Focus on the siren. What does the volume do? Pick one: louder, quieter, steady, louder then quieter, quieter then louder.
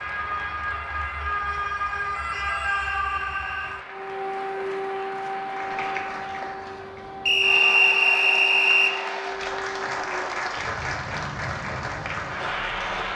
quieter.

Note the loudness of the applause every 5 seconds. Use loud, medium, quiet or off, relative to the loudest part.
medium, loud, loud.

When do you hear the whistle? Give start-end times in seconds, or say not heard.
2.5-3.8, 7.2-8.9.